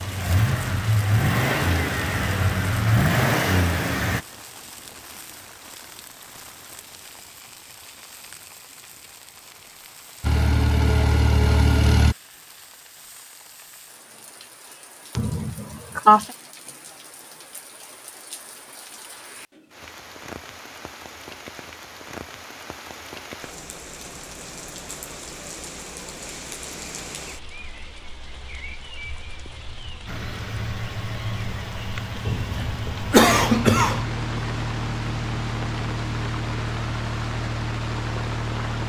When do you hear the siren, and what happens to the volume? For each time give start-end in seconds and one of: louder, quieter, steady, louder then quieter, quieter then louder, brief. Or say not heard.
not heard.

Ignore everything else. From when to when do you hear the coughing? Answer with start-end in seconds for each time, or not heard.
15.2-16.2, 32.2-34.0.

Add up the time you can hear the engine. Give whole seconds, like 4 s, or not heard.
15 s.